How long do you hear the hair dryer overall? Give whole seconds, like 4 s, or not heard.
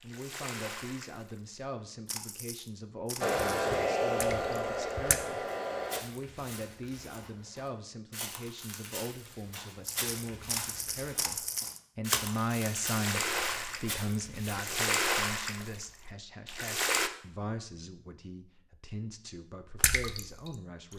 3 s.